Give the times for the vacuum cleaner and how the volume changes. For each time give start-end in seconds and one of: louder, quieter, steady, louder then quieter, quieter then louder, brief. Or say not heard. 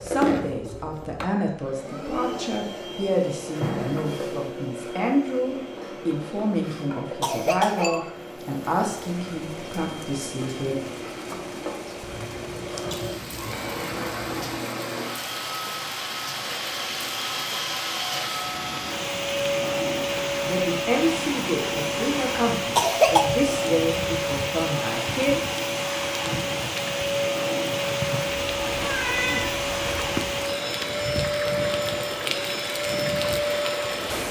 0.0-34.2 louder.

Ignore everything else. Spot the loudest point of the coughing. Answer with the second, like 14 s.
23 s.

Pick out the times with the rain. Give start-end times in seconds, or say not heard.
8.2-34.2.